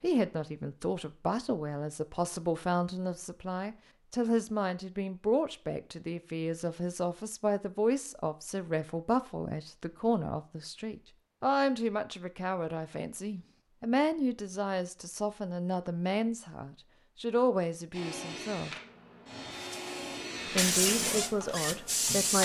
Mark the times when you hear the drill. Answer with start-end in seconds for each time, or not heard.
17.9-22.4.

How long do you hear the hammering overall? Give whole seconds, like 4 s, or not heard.
not heard.